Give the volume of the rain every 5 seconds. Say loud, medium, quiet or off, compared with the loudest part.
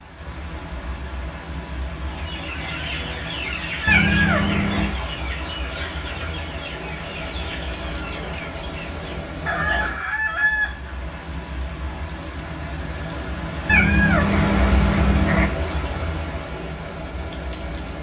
medium, loud, loud, loud.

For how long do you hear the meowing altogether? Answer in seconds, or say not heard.
3 s.